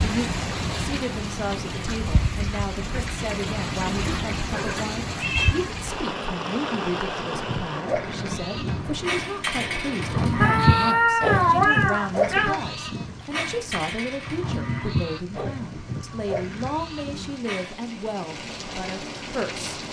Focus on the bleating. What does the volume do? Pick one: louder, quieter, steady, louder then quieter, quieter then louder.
louder then quieter.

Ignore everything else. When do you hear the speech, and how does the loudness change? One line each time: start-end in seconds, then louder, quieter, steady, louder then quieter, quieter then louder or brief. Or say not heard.
0.0-19.8 steady.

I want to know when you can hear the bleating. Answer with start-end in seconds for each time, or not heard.
7.3-17.8.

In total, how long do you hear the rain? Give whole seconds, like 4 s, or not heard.
20 s.